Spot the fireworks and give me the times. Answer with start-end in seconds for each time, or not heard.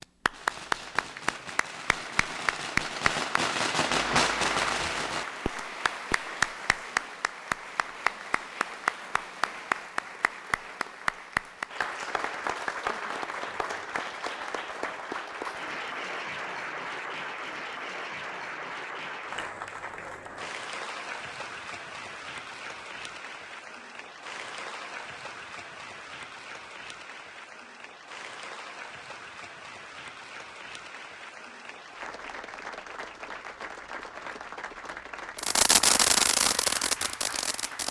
0.2-6.3, 35.4-37.8.